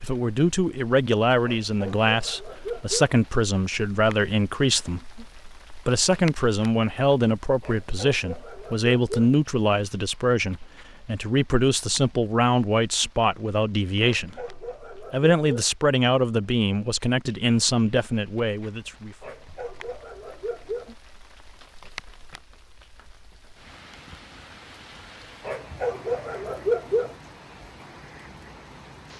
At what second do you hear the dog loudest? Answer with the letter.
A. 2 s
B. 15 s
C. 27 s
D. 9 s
C.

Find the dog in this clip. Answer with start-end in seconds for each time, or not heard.
1.4-3.1, 7.6-9.3, 14.2-15.7, 19.2-20.9, 25.4-27.1.